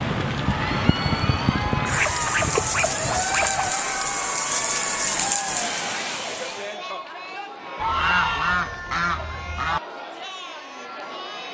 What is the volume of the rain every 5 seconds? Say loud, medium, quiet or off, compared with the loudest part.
loud, loud, off.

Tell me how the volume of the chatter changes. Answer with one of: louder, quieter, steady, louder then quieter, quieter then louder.
quieter.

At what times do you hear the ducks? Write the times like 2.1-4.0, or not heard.
1.8-3.7, 7.8-9.8.